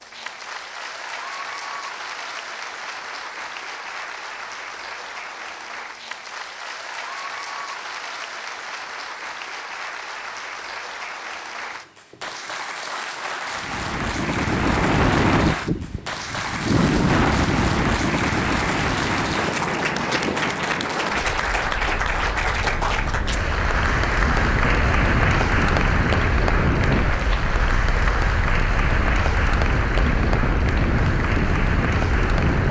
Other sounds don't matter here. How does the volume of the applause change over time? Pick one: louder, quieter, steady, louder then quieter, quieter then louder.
louder.